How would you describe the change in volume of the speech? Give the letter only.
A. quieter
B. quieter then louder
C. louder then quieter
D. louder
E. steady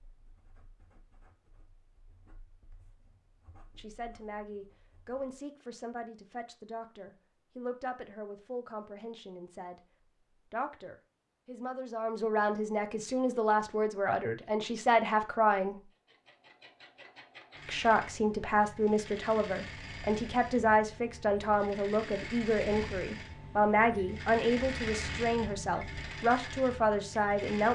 D.